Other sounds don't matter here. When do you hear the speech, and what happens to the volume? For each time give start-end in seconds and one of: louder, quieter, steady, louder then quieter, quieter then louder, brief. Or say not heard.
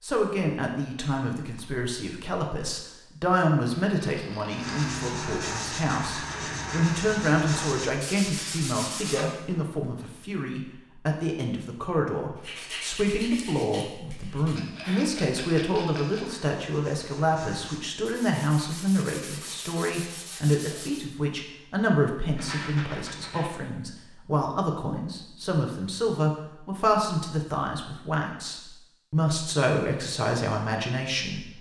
0.0-31.5 steady.